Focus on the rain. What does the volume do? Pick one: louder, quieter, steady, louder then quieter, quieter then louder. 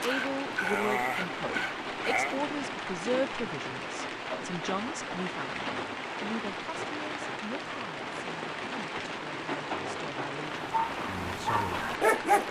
steady.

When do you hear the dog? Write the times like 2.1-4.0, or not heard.
0.0-2.4, 10.6-12.4.